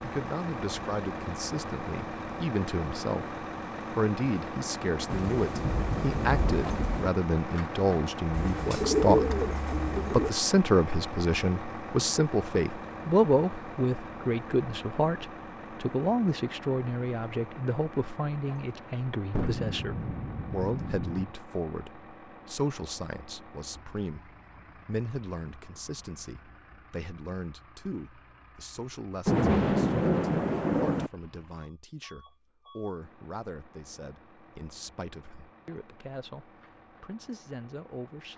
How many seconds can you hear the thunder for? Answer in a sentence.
You can hear the thunder for 6 seconds altogether.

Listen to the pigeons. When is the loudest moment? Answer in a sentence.
The loudest moment of the pigeons is at 9 seconds.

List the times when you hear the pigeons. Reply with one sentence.
You can hear the pigeons from 8.3 to 10.3 s.